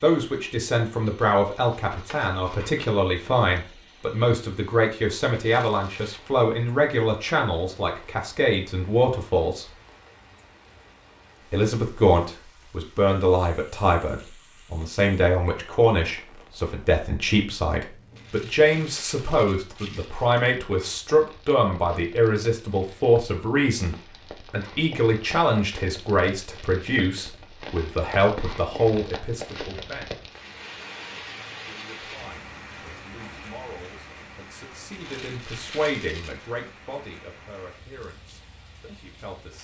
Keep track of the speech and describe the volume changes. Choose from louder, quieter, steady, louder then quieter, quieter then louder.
quieter.